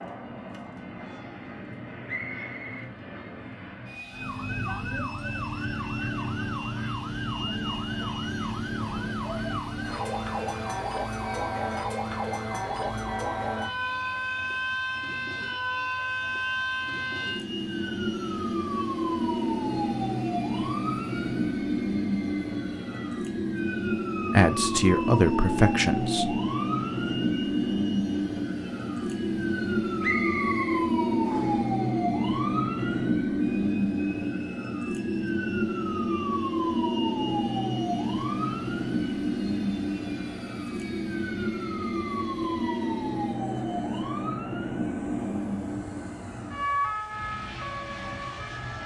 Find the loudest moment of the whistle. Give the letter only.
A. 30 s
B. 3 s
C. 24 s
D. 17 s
A.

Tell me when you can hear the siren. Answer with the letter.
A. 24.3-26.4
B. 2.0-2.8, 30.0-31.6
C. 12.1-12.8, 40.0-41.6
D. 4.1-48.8
D.